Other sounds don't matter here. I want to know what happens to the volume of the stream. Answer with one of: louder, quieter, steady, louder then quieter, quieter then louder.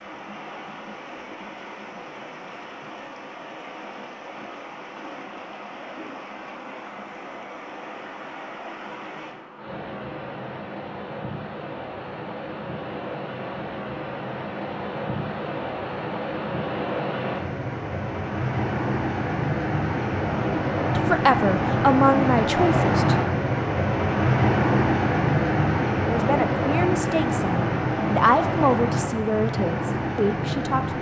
louder.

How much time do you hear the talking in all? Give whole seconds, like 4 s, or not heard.
7 s.